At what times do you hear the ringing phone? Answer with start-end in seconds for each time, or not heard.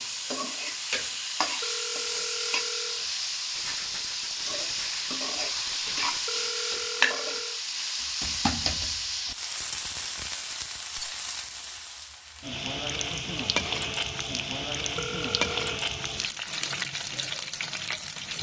1.6-3.0, 6.2-7.6, 14.9-15.8.